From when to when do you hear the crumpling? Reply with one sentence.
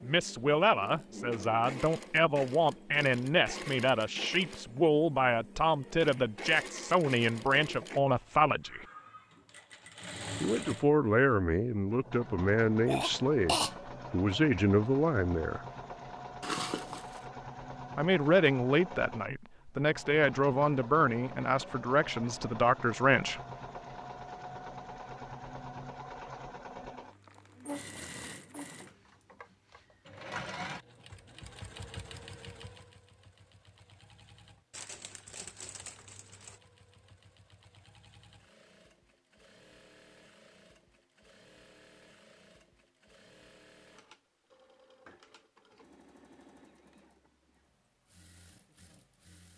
The crumpling can be heard from 16.4 to 17.2 s and from 34.7 to 36.6 s.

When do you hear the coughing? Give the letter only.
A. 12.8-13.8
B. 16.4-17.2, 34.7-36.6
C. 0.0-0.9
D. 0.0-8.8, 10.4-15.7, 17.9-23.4
A.